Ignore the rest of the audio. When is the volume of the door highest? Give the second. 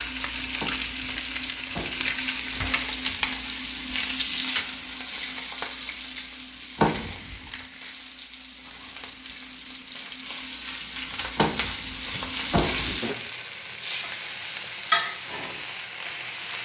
7 s.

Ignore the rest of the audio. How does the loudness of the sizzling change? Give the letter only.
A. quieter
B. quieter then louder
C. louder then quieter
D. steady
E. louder
B.